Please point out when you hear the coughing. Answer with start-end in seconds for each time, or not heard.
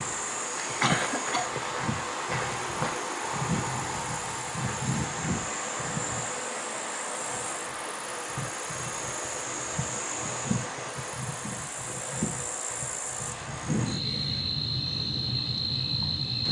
0.8-1.5.